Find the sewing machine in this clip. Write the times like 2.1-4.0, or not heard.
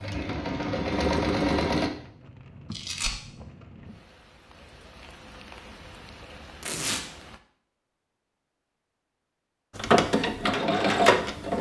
0.0-1.9, 9.8-11.5.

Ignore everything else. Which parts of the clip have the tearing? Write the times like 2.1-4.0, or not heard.
2.7-3.1, 6.6-7.0.